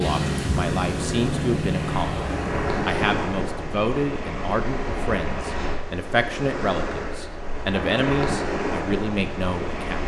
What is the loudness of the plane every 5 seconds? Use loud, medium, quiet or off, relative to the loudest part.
loud, off.